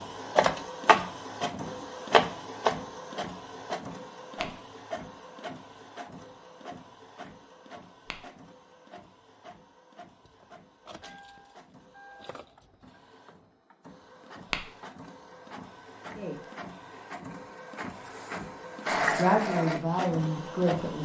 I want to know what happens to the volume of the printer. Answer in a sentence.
The volume of the printer goes down, then up.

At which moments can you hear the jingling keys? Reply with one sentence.
You can hear the jingling keys from 10.2 to 13.0 s.